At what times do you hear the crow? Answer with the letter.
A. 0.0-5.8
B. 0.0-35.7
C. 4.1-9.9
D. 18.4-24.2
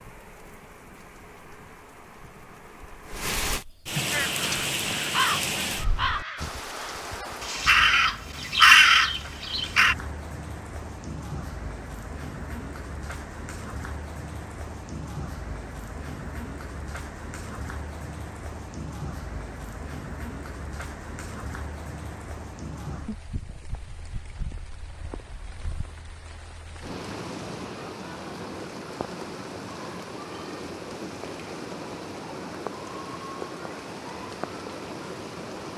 C.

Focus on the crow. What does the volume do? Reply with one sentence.
The loudness of the crow goes down, then up.